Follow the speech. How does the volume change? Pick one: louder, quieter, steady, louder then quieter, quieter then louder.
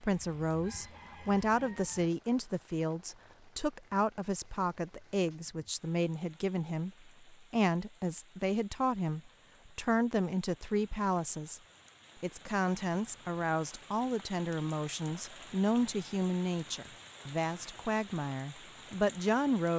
steady.